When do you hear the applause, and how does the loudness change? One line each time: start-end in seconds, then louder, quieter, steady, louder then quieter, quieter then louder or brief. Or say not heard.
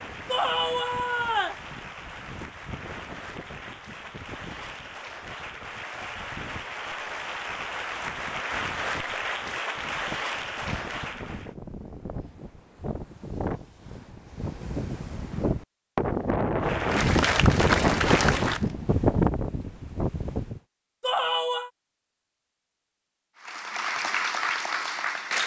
0.0-11.6 louder
16.6-18.7 brief
23.4-25.4 brief.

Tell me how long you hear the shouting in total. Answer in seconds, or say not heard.
2 s.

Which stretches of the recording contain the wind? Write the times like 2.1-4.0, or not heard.
0.0-20.6.